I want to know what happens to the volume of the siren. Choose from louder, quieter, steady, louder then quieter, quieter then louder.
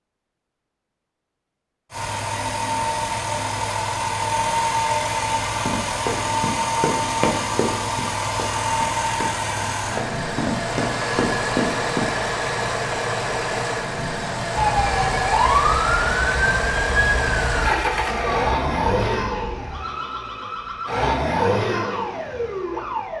quieter.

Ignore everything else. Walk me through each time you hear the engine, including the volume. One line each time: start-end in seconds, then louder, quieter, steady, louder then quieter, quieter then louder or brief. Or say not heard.
1.9-23.1 steady.